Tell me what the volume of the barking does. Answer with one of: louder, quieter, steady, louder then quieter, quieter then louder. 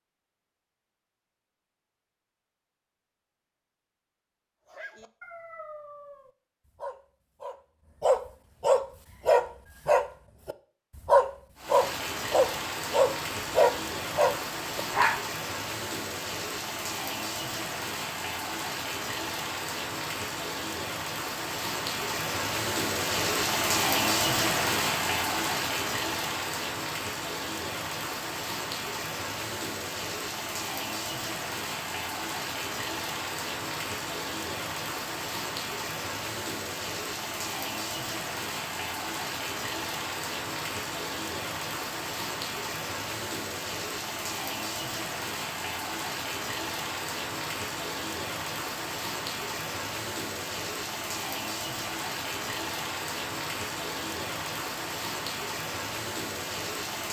louder.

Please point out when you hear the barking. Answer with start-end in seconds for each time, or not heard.
4.7-15.2.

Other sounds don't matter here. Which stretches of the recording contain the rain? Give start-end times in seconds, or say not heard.
11.6-57.0.